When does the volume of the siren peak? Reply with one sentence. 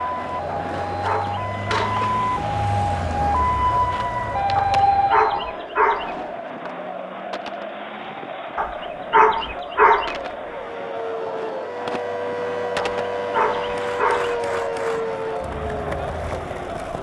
The volume of the siren peaks at 5 seconds.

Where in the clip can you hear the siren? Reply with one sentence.
You can hear the siren from 0.0 to 5.7 s and from 10.4 to 16.9 s.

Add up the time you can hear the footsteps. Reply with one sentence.
You can't hear the footsteps here.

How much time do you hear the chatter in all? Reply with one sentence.
You can hear the chatter for 17 seconds altogether.